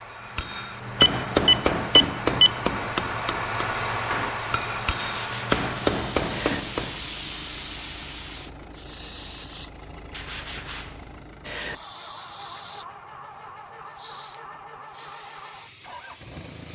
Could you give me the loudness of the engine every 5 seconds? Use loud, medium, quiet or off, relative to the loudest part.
loud, medium, medium, medium.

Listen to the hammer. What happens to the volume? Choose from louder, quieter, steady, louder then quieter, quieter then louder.
quieter then louder.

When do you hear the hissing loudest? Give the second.
7 s.